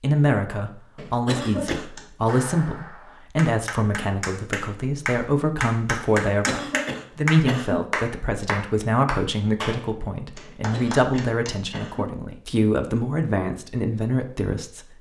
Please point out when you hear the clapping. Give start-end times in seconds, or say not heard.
1.6-11.6.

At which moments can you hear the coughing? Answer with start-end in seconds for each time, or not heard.
0.9-1.9, 6.2-7.8, 10.4-12.1.